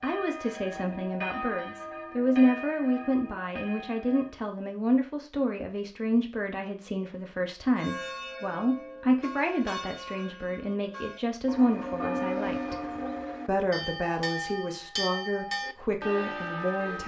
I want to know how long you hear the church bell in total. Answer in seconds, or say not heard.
14 s.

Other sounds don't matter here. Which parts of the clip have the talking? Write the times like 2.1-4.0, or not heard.
0.0-12.8, 13.4-17.0.